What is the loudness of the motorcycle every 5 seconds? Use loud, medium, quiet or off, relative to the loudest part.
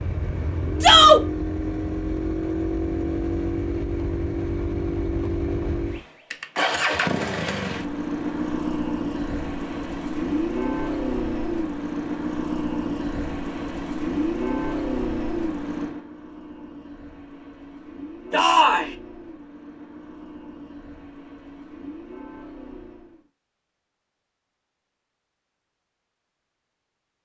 loud, loud, loud, medium, quiet, off.